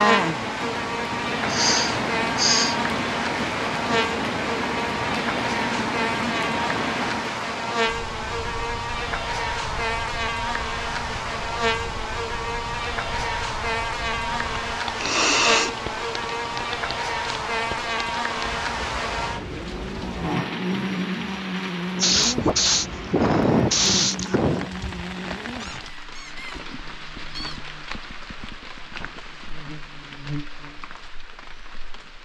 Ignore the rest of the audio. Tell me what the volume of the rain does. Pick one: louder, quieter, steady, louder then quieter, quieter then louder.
quieter.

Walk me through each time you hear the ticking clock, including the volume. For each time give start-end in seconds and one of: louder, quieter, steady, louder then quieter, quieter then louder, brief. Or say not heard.
not heard.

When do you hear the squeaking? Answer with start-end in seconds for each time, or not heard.
25.6-27.6.